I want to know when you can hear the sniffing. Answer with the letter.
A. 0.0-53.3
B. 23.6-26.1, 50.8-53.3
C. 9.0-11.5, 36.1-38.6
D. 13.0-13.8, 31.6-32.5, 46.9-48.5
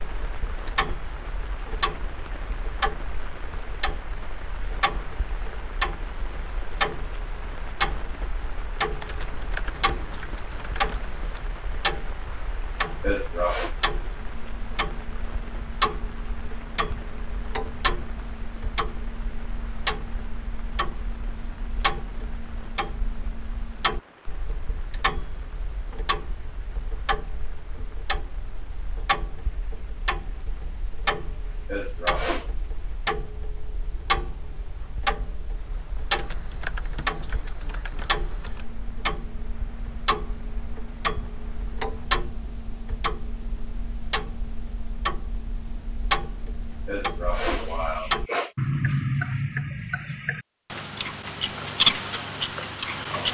D.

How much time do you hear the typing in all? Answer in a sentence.
You can hear the typing for 5 seconds altogether.